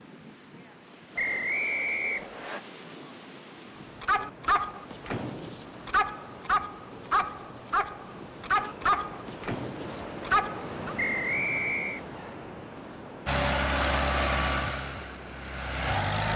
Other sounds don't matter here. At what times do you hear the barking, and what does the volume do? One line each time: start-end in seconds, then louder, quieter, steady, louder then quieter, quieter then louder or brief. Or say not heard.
3.8-10.9 steady.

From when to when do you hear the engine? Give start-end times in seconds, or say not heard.
13.2-16.3.